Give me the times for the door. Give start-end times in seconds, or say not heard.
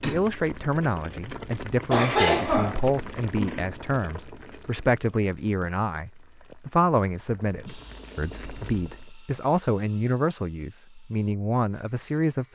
not heard.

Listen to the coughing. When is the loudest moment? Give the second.
2 s.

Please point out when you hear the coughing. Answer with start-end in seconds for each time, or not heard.
1.9-3.6.